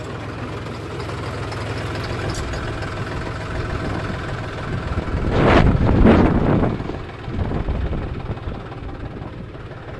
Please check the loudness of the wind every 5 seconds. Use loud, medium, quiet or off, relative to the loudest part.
quiet, loud.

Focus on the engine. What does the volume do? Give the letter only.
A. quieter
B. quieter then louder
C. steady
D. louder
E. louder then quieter
A.